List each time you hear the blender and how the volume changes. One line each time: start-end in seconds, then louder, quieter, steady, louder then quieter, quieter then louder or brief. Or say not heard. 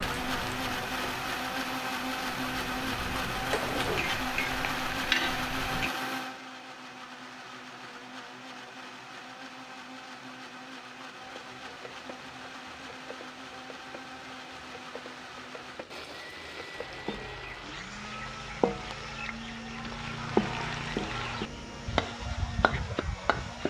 0.0-23.6 quieter.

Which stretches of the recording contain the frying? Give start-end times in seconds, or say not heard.
0.0-5.9, 11.2-23.6.